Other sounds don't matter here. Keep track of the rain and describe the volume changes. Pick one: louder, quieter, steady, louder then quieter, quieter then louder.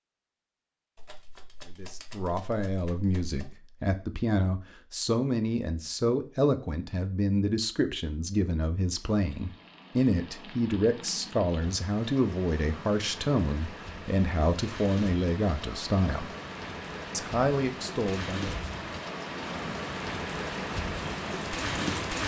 louder.